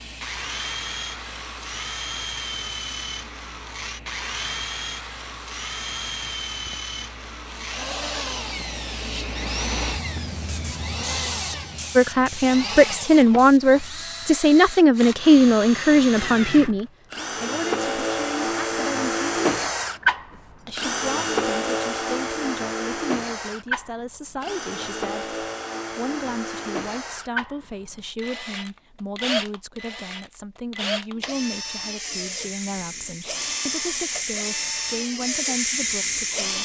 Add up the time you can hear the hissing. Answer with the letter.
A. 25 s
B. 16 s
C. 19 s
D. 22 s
C.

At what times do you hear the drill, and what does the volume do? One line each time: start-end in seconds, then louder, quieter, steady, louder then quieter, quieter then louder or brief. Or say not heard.
0.2-36.6 louder then quieter.